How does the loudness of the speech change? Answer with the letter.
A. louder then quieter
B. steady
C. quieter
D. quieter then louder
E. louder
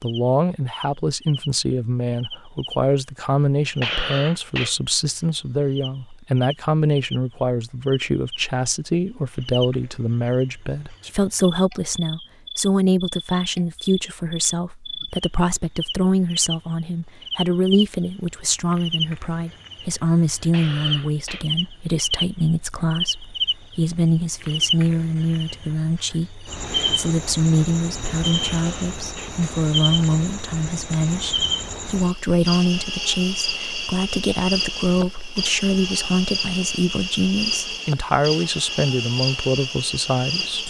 B.